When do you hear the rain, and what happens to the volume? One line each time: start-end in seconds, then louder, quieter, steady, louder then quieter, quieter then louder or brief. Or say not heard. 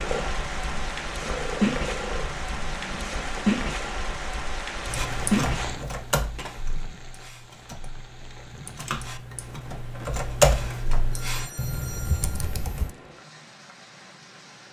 0.0-14.6 quieter.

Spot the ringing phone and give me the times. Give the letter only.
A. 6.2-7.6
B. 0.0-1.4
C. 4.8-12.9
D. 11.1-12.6
D.